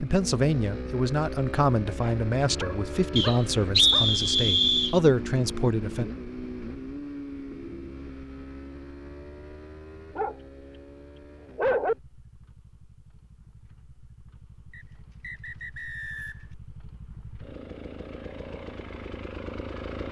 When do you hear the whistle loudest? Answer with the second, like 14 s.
4 s.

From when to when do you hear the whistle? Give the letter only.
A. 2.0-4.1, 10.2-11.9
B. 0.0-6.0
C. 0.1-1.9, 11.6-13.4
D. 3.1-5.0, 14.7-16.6
D.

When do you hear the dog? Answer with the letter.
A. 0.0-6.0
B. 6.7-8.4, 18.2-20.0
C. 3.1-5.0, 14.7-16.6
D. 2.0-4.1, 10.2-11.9
D.